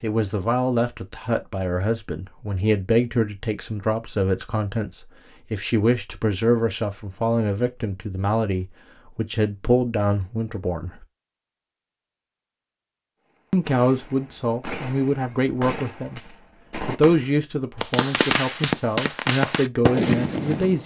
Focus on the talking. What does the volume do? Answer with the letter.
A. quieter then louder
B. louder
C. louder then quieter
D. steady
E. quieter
D.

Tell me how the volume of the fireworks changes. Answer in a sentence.
The loudness of the fireworks goes up.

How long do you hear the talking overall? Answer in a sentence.
The talking can be heard for 18 seconds in total.